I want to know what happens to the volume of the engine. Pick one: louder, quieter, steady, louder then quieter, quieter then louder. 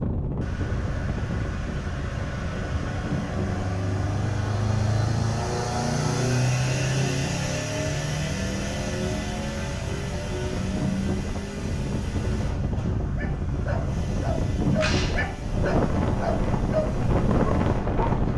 louder then quieter.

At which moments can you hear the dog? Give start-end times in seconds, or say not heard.
13.2-18.3.